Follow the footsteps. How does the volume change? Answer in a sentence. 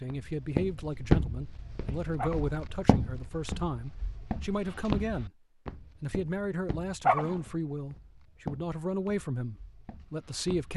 The volume of the footsteps goes down, then up.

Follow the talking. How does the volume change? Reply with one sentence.
The volume of the talking stays about the same.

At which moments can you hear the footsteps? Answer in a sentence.
The footsteps can be heard from 0.1 to 10.7 s.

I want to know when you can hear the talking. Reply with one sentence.
You can hear the talking from 0.0 to 5.3 s and from 6.0 to 10.7 s.